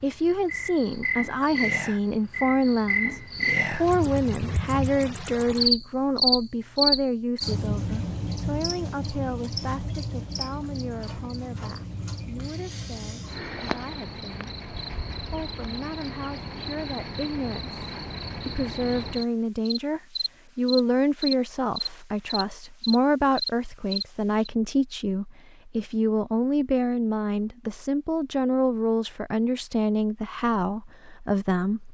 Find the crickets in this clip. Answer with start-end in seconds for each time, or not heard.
0.0-24.5.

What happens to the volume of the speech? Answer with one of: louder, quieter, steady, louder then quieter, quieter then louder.
quieter then louder.